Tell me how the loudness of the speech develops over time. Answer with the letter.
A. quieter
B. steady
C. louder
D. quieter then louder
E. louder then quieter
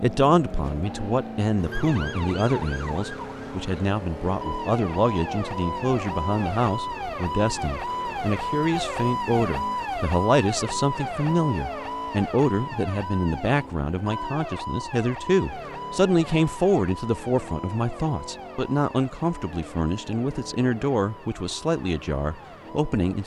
B.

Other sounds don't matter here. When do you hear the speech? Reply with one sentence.
The speech can be heard from 0.0 to 23.2 s.